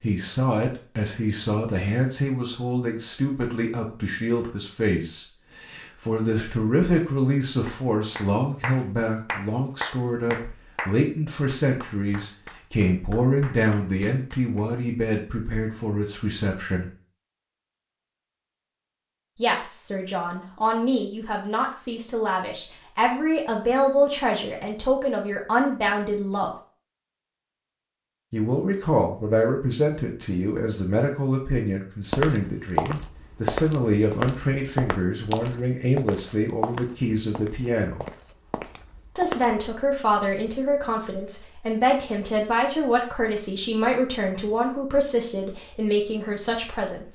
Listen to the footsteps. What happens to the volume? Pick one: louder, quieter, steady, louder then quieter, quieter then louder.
quieter.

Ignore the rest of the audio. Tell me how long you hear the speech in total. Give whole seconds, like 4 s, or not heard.
42 s.